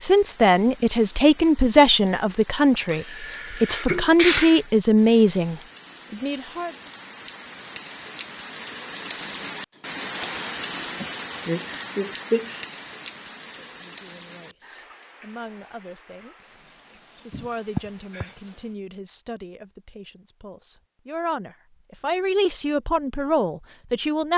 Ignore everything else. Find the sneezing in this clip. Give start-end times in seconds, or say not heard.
2.9-4.6, 11.0-12.7, 17.3-18.4.